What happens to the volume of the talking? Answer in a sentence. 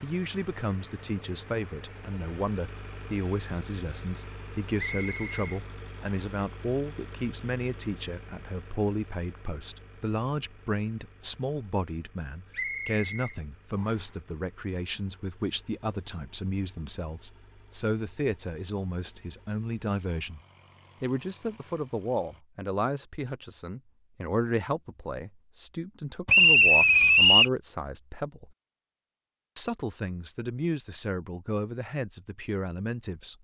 The loudness of the talking stays about the same.